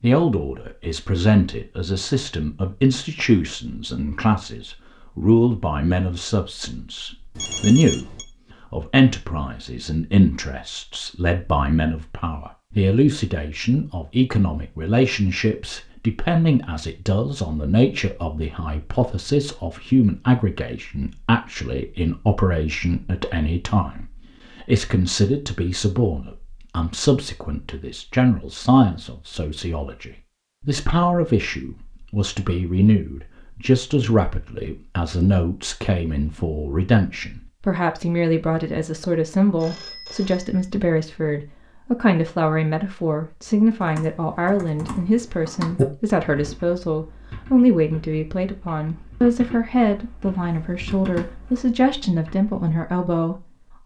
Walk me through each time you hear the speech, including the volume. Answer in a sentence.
You can hear the speech from 0.0 to 53.5 s, at a steady volume.